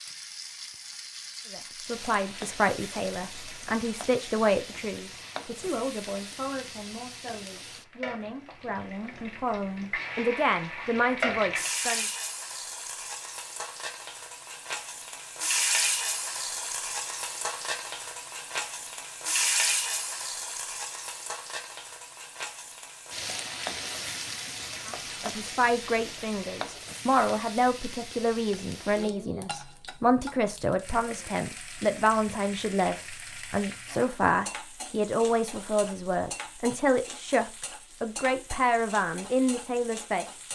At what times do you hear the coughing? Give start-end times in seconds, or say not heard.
not heard.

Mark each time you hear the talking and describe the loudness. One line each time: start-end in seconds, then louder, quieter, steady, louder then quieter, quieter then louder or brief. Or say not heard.
1.5-12.1 quieter then louder
24.9-40.5 steady.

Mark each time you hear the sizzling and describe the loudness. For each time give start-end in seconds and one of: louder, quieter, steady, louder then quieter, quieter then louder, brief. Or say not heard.
0.0-40.5 louder then quieter.